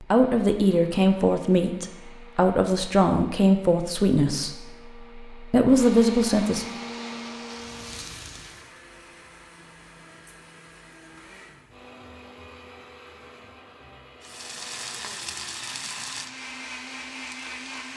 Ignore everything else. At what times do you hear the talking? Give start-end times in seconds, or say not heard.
0.0-6.7.